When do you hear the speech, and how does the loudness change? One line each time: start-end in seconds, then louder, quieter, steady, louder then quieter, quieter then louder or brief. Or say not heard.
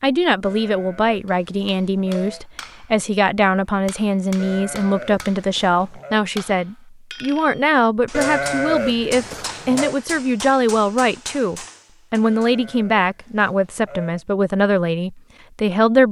0.0-16.0 steady.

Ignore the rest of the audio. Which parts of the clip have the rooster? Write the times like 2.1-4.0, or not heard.
not heard.